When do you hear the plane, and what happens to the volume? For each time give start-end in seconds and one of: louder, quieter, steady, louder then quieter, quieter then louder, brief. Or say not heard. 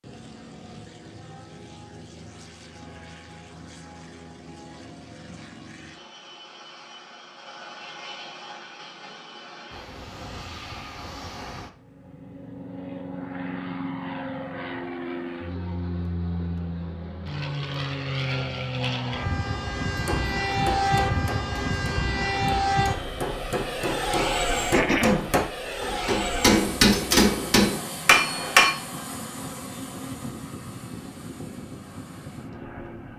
0.0-33.1 louder then quieter.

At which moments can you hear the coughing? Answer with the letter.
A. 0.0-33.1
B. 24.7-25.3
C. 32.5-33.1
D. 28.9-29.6
B.